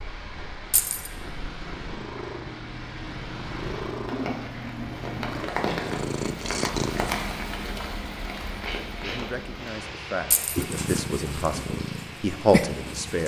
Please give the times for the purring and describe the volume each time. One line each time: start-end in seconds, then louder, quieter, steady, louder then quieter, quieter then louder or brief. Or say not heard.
0.0-7.2 louder
10.6-13.2 brief.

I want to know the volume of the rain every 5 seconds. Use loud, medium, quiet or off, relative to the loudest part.
medium, loud, medium.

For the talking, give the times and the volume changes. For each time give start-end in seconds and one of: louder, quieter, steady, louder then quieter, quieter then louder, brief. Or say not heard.
8.6-13.2 louder.